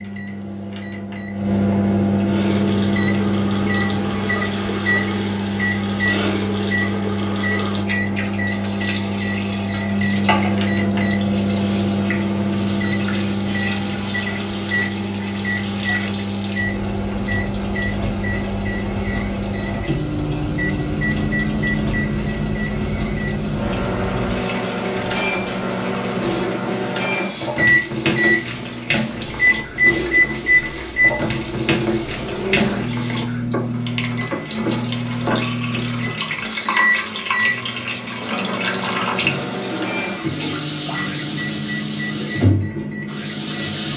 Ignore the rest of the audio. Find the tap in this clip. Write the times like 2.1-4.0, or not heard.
2.2-43.9.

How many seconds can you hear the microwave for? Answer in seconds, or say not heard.
44 s.